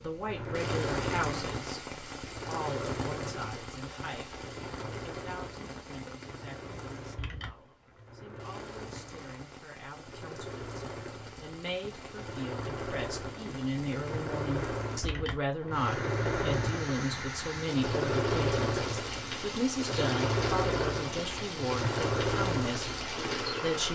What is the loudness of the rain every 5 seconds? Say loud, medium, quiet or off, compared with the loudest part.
loud, medium, medium, loud, loud.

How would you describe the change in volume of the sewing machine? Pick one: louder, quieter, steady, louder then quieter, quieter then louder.
quieter then louder.